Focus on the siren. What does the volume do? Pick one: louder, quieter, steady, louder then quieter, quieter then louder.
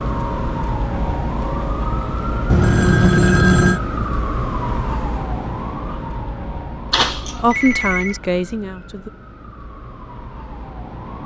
quieter.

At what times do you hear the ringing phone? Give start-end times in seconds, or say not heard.
2.5-3.8, 6.9-8.2.